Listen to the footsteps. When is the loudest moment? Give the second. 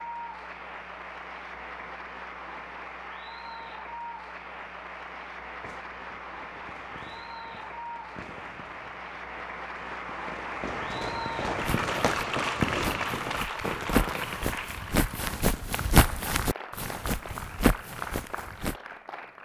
16 s.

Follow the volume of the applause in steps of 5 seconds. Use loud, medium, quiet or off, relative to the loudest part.
medium, medium, loud, medium.